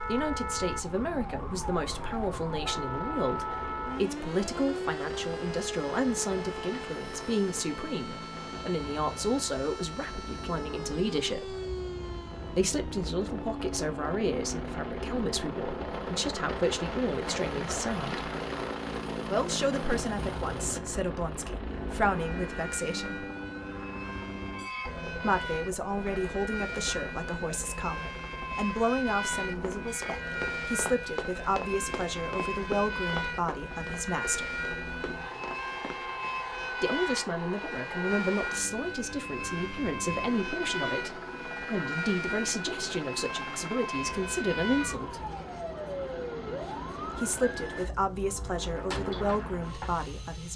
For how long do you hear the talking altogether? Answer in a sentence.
The talking can be heard for 43 seconds in total.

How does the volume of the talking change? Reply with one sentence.
The loudness of the talking stays about the same.